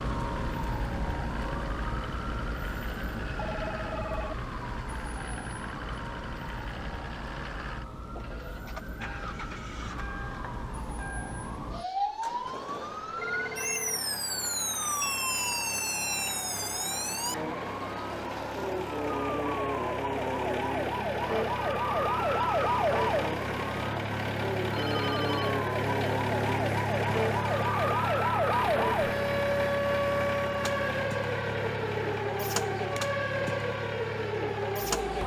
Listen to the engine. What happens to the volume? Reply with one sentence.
The volume of the engine goes up.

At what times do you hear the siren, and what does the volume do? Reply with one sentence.
The siren can be heard from 0.0 to 35.2 s, getting louder.